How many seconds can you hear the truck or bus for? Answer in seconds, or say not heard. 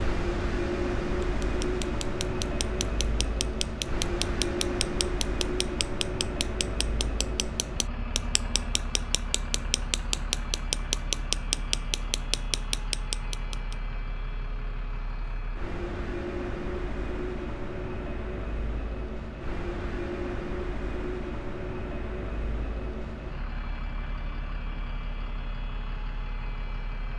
27 s.